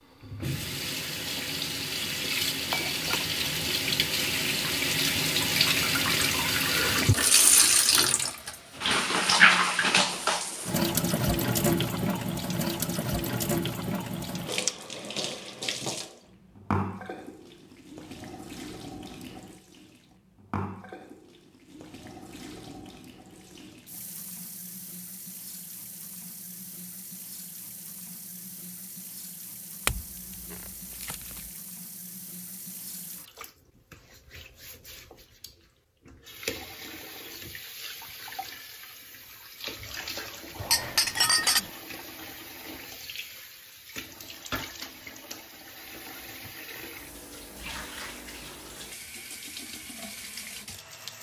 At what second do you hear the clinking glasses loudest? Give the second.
41 s.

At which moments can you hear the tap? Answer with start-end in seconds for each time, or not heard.
0.1-51.1.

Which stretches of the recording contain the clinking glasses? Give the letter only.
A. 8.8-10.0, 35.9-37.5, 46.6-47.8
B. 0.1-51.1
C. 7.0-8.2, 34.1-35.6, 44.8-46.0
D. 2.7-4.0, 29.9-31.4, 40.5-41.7
D.